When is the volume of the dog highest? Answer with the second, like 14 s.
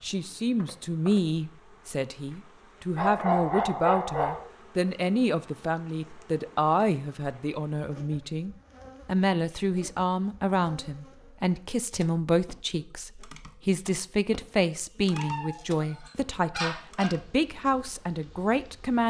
3 s.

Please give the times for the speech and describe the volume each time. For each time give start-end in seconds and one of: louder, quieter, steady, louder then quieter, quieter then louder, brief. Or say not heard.
0.0-19.0 steady.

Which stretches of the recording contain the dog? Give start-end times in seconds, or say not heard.
3.0-4.4, 15.1-17.1.